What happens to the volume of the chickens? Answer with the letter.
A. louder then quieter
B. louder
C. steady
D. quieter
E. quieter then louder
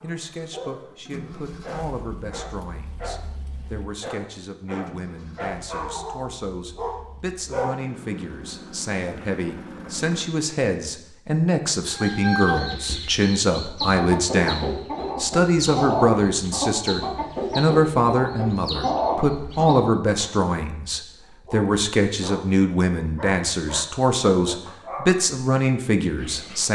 C.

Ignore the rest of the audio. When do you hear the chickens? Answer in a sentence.
You can hear the chickens from 11.8 to 20.3 s.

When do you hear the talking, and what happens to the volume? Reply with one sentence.
The talking can be heard from 0.0 to 26.7 s, getting louder.